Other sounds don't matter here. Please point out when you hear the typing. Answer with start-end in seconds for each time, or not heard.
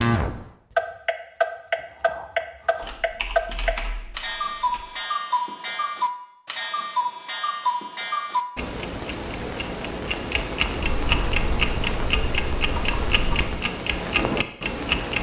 2.8-4.8, 10.8-13.6.